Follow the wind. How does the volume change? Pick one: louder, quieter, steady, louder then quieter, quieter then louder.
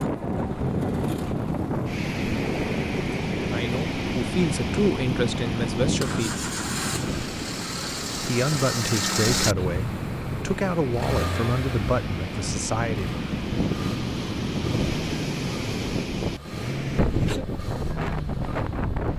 quieter then louder.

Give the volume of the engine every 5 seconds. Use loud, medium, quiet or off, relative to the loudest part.
medium, loud, loud, medium.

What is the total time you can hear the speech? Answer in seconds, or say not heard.
8 s.